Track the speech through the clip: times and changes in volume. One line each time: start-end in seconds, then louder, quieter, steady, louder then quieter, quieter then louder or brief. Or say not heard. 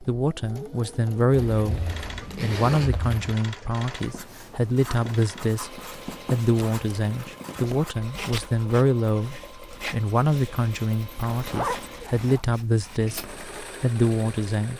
0.0-14.7 steady.